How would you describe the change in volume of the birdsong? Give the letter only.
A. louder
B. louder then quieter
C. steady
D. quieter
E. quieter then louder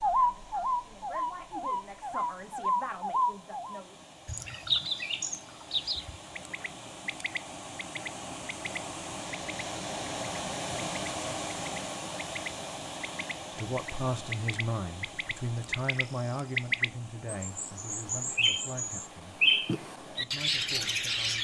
E.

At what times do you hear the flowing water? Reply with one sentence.
The flowing water can be heard from 0.0 to 21.4 s.